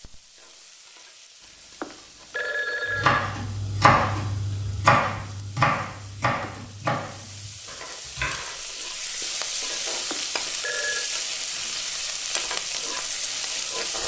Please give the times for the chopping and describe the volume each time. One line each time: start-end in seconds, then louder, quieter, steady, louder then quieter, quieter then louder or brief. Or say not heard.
2.9-8.4 quieter.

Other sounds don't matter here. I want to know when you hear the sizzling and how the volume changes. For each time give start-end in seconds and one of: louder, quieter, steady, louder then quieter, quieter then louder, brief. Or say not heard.
0.0-14.0 louder.